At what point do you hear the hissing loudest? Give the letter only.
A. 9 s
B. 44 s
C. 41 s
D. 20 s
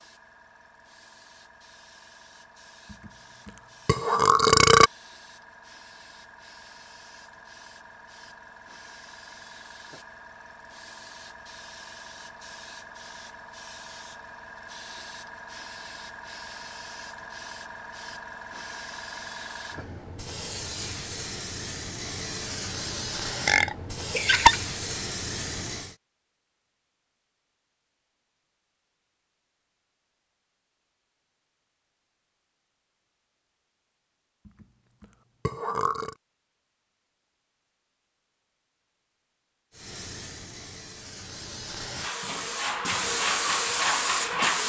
B.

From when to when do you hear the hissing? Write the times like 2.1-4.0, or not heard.
0.0-25.9, 39.7-44.6.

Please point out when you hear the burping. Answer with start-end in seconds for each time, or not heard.
3.9-4.9, 23.4-24.6, 34.5-36.1.